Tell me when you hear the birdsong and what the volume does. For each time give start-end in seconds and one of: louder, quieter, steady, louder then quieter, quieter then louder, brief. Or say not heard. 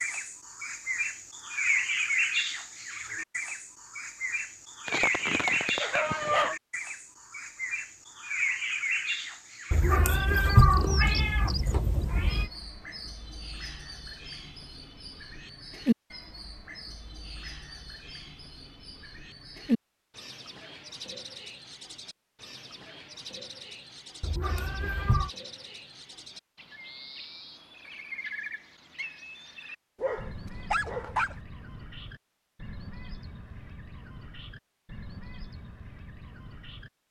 0.0-36.9 quieter.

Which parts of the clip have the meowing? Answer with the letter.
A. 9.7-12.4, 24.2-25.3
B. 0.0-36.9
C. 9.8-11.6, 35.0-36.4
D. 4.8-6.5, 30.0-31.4
A.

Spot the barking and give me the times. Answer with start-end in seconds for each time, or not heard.
4.8-6.5, 30.0-31.4.